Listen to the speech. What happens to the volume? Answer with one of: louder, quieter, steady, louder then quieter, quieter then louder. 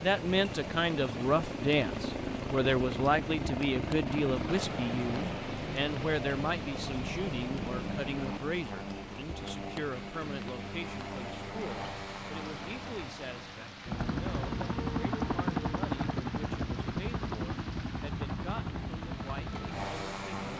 quieter.